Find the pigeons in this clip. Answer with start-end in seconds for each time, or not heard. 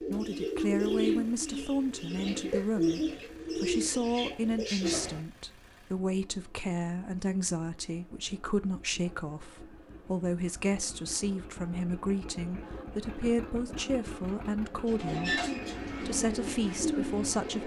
0.0-5.2, 14.8-17.6.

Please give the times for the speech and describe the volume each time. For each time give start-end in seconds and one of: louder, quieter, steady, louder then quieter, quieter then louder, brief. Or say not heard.
0.0-17.6 steady.